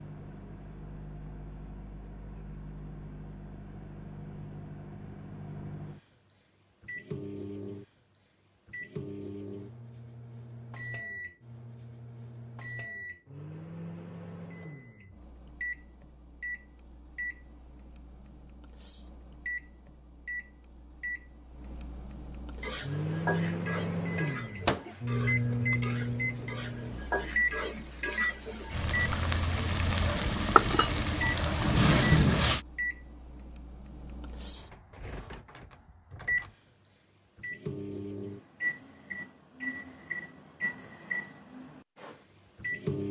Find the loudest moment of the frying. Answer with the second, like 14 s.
32 s.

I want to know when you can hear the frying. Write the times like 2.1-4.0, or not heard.
22.6-32.6.